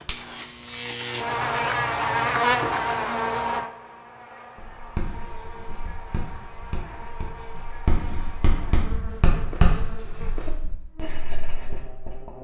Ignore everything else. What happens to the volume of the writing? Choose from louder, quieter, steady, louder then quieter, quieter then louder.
louder then quieter.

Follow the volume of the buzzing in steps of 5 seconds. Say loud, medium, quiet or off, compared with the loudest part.
loud, quiet, quiet.